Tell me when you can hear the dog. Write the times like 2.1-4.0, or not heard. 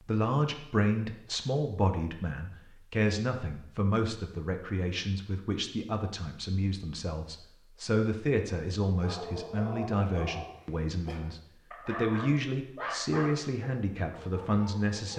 9.0-15.1.